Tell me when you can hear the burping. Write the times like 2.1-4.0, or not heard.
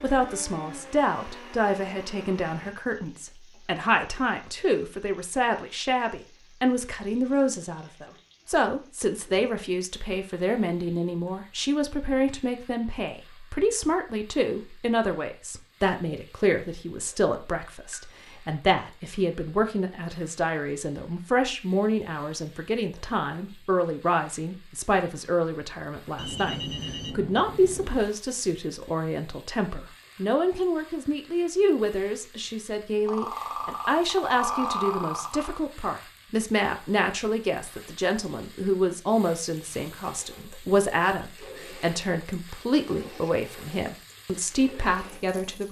33.0-35.6.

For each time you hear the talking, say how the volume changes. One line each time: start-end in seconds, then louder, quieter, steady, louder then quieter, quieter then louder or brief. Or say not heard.
0.0-45.6 steady.